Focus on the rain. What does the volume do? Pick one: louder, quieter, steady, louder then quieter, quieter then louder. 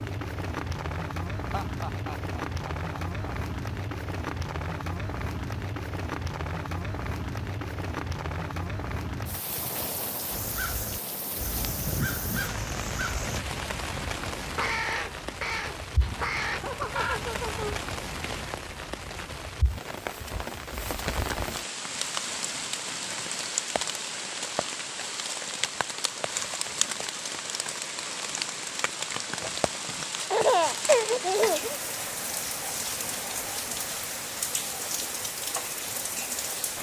steady.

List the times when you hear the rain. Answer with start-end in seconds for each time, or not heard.
0.0-36.7.